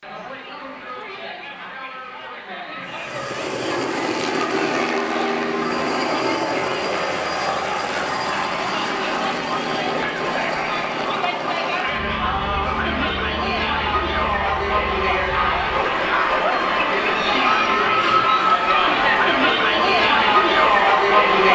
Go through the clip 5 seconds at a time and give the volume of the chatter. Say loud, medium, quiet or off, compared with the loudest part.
quiet, quiet, medium, loud, loud.